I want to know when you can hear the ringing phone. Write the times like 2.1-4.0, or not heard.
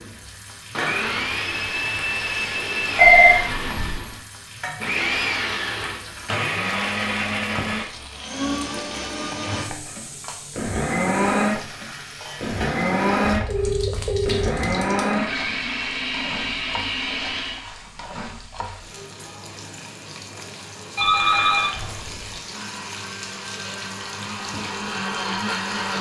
3.0-4.0, 13.2-14.7, 20.9-22.4.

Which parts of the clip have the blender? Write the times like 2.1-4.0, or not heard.
0.0-17.6, 21.1-25.9.